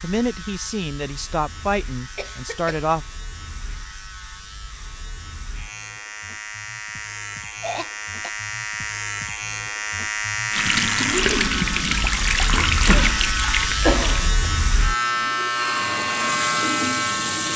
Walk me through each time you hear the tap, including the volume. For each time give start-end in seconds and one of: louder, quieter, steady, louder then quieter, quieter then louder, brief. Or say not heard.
10.5-17.5 quieter then louder.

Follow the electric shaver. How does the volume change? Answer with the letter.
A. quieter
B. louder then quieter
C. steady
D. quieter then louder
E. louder
E.